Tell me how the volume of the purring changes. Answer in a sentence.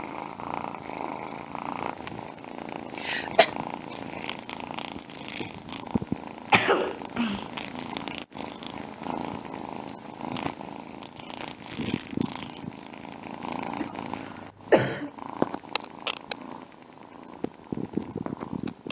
The loudness of the purring stays about the same.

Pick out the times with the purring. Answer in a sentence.
You can hear the purring from 0.0 to 18.8 s.